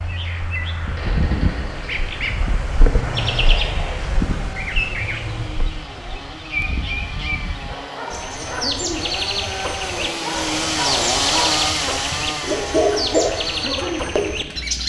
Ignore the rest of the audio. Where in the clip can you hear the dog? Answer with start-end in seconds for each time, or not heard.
7.5-14.3.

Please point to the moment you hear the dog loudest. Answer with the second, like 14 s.
13 s.